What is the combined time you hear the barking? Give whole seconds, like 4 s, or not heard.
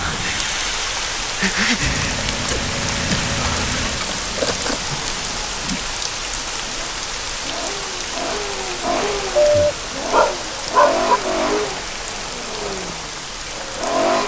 2 s.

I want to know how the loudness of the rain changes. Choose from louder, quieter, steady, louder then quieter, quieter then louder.
quieter.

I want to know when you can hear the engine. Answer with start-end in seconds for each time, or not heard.
1.8-14.2.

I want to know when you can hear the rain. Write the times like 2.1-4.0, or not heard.
0.0-14.2.